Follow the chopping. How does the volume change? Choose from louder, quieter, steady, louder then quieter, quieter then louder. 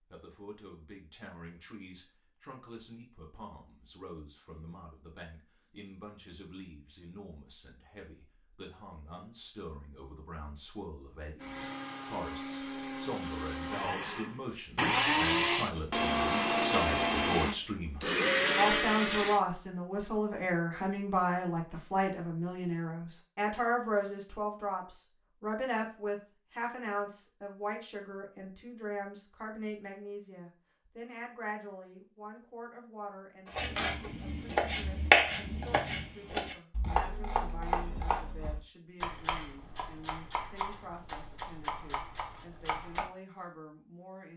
quieter.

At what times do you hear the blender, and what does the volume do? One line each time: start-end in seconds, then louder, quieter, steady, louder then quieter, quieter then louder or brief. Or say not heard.
11.4-19.4 louder.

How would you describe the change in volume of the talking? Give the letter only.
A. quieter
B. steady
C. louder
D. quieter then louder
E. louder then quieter
E.